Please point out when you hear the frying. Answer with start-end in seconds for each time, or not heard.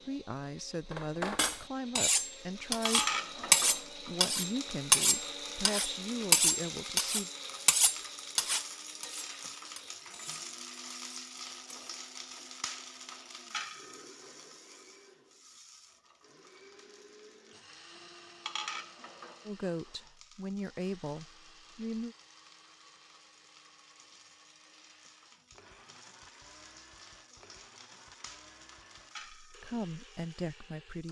2.4-31.0.